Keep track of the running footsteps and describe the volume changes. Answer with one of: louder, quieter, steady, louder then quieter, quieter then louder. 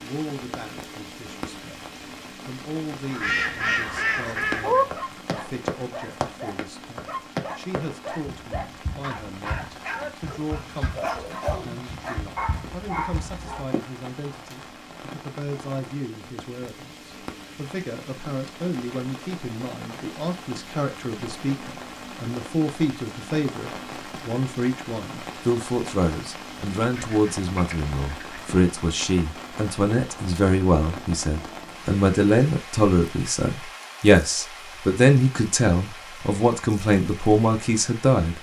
quieter.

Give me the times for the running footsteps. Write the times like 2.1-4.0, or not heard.
4.4-13.8.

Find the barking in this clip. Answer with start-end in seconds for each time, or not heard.
3.1-13.7.